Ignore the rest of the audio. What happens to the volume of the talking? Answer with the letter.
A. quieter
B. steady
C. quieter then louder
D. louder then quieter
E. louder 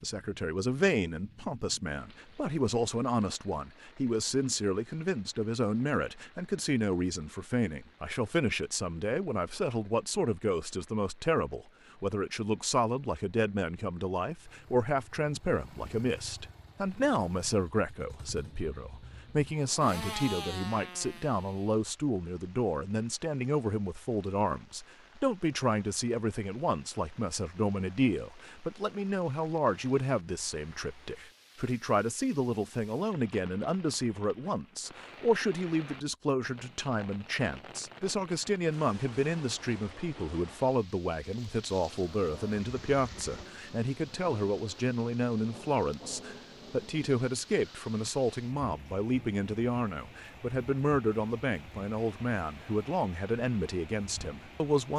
B.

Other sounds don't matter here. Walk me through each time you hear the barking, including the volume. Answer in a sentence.
You can't hear the barking here.